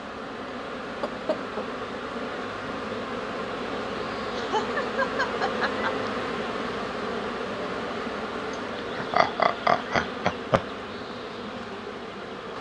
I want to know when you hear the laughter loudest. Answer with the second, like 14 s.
10 s.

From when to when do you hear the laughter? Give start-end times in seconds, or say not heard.
0.8-2.1, 4.3-6.0, 9.0-10.6.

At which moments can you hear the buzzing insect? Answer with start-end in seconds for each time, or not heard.
0.0-12.5.